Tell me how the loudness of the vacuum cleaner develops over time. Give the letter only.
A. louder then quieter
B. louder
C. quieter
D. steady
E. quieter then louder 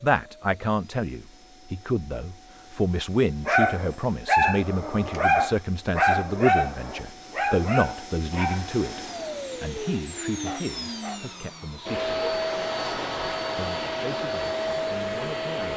B.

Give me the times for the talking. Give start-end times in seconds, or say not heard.
0.0-12.1, 13.6-15.7.